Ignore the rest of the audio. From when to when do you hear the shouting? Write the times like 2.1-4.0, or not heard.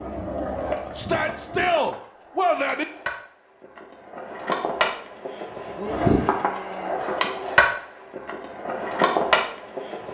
0.9-2.9, 5.8-7.0.